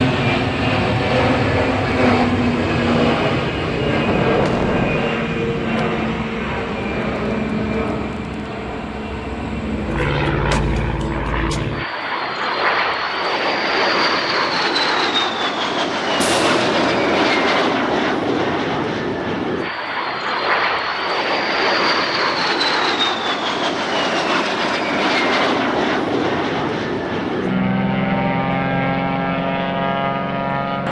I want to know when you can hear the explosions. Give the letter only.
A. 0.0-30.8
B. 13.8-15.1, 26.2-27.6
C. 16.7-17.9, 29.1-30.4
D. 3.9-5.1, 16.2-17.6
D.